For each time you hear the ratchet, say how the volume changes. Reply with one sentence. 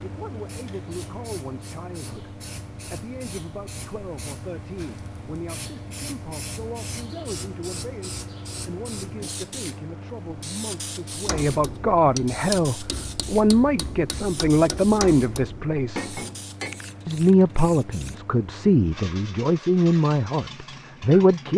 The ratchet can't be heard in this clip.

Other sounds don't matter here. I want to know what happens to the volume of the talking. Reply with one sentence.
The loudness of the talking goes up.